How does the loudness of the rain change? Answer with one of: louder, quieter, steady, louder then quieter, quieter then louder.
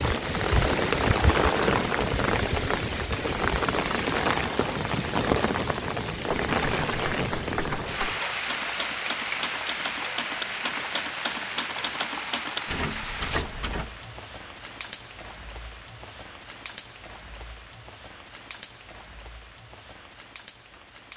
quieter.